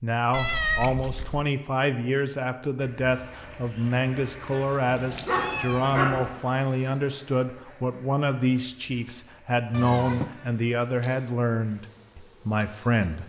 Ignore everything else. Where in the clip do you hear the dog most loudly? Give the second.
6 s.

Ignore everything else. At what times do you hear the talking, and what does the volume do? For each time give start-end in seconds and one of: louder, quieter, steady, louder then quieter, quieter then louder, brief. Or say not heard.
0.0-13.2 steady.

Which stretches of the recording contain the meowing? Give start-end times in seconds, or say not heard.
0.3-1.4, 4.9-6.4, 9.7-10.3.